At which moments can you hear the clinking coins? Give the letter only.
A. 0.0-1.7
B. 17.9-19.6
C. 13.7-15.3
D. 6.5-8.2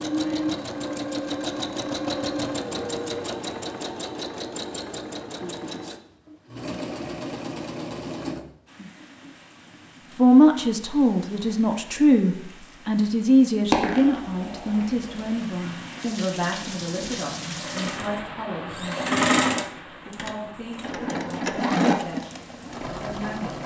C.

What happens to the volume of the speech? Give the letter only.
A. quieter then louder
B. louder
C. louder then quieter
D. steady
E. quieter
E.